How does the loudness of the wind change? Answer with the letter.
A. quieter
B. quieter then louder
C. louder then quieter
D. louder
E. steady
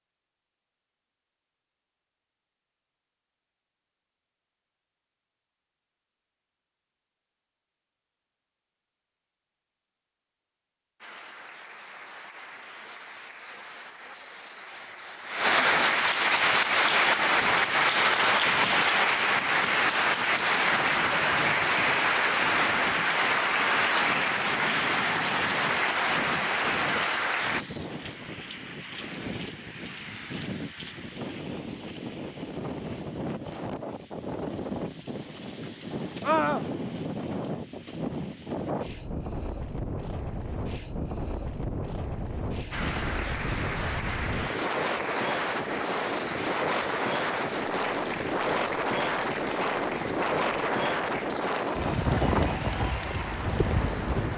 D.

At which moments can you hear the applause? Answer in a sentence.
The applause can be heard from 11.0 to 27.6 s and from 42.7 to 54.3 s.